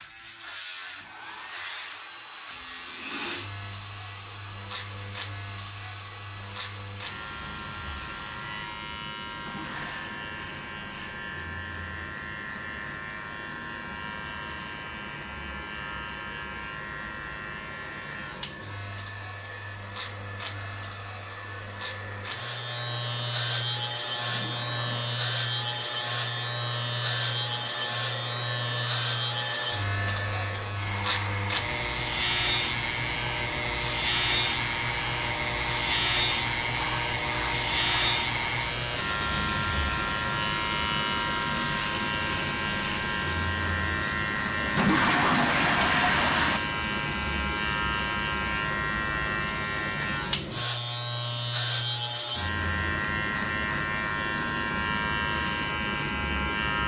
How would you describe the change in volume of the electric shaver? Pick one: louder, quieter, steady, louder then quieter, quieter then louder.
louder.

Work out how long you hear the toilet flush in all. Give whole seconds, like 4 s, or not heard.
4 s.